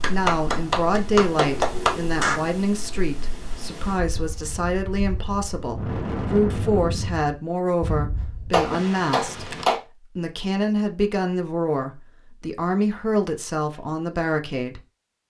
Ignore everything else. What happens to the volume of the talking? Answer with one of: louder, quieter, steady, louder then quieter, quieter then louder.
steady.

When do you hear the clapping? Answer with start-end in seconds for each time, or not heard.
0.0-2.4, 8.5-9.8.